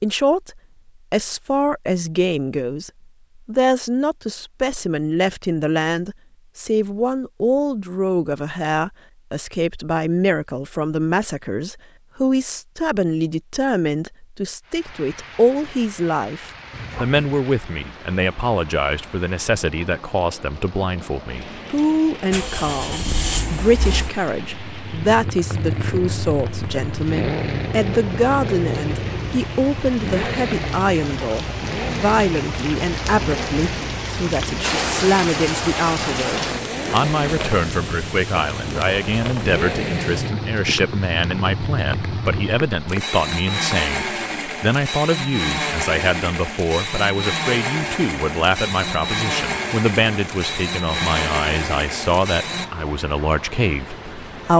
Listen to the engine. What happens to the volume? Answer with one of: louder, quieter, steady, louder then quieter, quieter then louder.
steady.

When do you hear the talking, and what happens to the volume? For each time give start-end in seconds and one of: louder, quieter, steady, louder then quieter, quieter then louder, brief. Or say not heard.
0.0-54.5 steady.